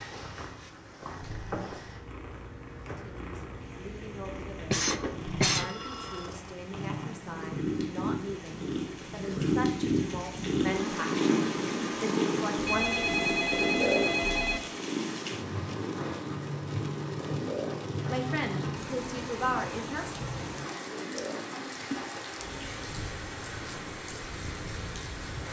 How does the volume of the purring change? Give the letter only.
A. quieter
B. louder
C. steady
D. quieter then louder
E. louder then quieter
E.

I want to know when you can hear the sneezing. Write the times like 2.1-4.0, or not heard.
4.2-5.7.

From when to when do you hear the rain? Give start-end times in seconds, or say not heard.
0.1-25.4.